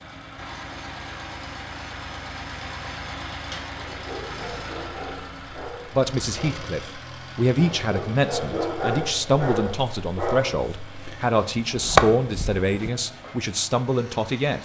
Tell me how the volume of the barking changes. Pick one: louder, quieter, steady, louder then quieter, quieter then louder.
louder.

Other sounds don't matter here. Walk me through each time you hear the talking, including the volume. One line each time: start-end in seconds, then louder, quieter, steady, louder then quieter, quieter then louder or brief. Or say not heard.
5.9-14.5 steady.